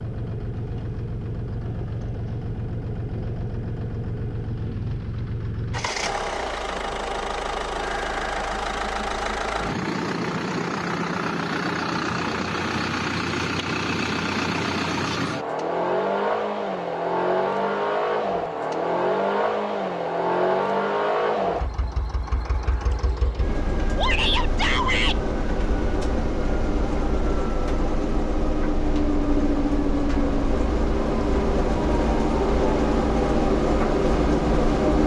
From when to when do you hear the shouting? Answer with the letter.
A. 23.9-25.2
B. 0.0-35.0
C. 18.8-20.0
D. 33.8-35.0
A.